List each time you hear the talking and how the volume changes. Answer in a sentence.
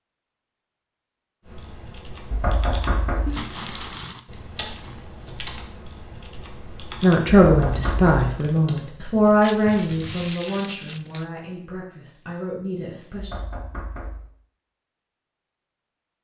The talking can be heard from 7.0 to 13.3 s, getting quieter.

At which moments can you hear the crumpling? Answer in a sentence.
You can hear the crumpling from 3.2 to 5.0 s and from 9.4 to 11.3 s.